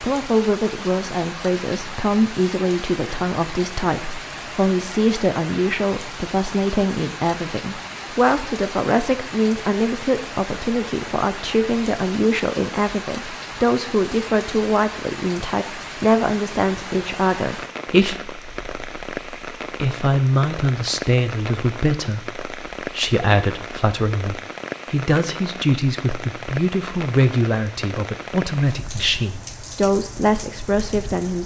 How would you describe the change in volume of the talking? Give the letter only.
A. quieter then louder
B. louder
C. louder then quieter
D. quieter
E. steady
E.